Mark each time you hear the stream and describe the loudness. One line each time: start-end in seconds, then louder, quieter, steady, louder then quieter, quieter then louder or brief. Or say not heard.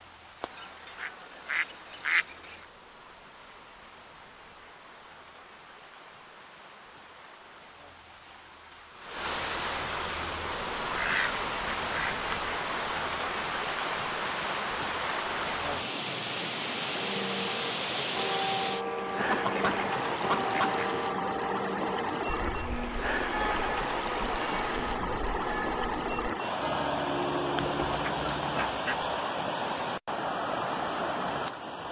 0.0-31.8 louder.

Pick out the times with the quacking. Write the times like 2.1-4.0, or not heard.
0.4-2.5, 10.9-12.4, 19.2-20.9, 27.6-29.1.